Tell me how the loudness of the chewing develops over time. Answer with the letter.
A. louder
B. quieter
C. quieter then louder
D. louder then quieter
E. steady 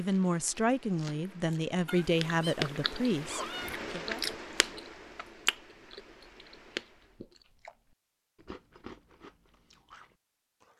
D.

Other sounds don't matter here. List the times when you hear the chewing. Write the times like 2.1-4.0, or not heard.
0.1-10.7.